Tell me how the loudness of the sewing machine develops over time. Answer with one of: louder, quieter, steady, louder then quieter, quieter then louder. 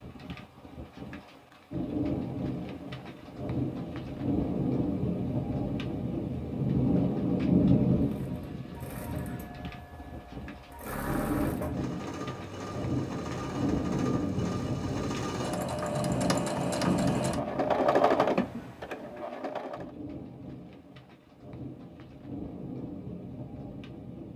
louder.